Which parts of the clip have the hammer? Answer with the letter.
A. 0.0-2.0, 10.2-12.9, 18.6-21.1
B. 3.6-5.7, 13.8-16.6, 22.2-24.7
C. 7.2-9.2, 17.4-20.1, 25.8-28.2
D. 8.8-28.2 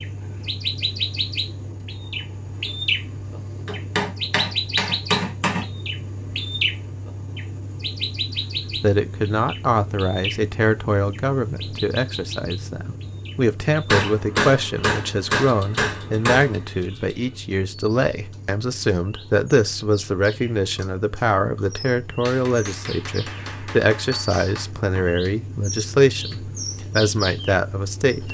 B.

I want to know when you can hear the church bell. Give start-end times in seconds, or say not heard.
not heard.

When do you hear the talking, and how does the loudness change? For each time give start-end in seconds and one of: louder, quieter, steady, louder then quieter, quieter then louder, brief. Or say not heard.
8.8-28.2 steady.